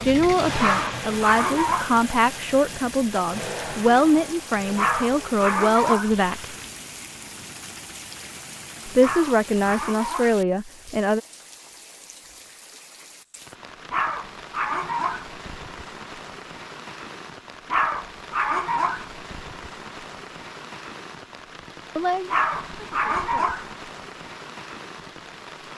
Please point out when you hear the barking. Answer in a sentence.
The barking can be heard from 0.6 to 2.0 s, from 4.8 to 6.2 s, from 9.0 to 10.4 s, from 13.9 to 15.3 s, from 17.7 to 19.1 s and from 22.3 to 23.7 s.